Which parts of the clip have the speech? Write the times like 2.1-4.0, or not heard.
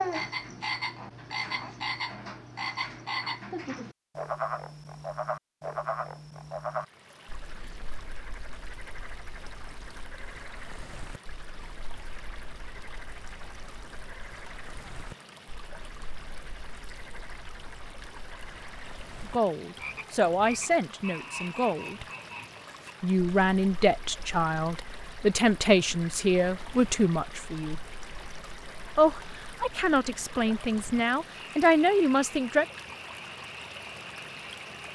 19.3-22.1, 23.0-27.8, 28.9-32.6.